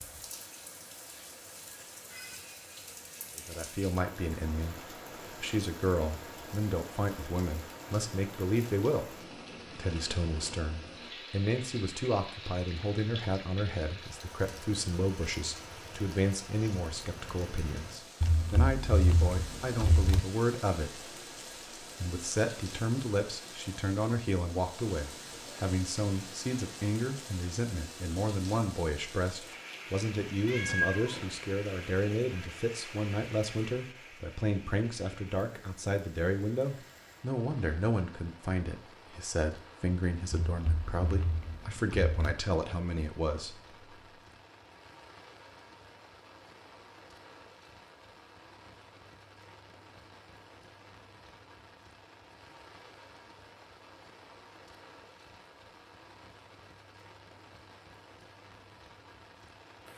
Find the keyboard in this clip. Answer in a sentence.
The keyboard can be heard from 18.2 to 20.2 s and from 40.3 to 42.1 s.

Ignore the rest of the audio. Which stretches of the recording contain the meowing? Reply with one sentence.
You can hear the meowing from 30.4 to 31.3 s.